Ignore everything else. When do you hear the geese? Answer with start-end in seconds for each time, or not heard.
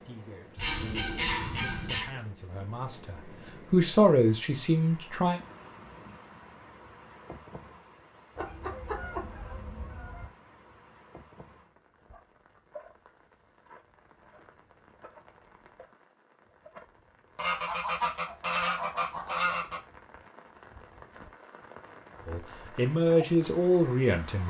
0.6-2.1, 8.3-10.3, 17.4-19.8.